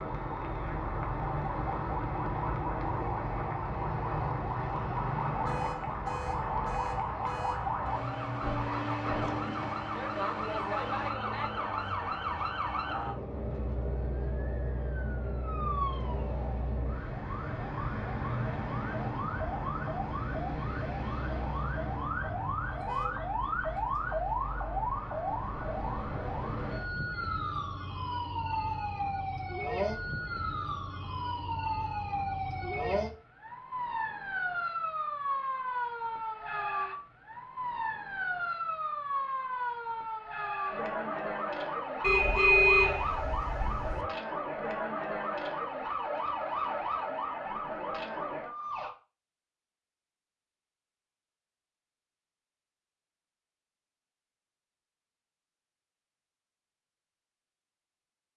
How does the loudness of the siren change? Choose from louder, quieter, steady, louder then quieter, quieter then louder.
steady.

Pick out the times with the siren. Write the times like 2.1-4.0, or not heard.
0.0-49.0.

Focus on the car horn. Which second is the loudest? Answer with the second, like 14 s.
43 s.